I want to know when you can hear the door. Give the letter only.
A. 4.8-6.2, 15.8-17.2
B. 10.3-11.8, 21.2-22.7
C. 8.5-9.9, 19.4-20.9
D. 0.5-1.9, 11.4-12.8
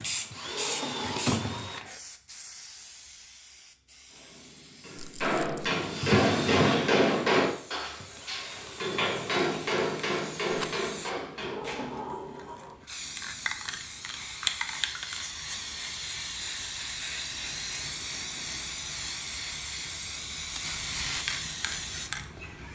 D.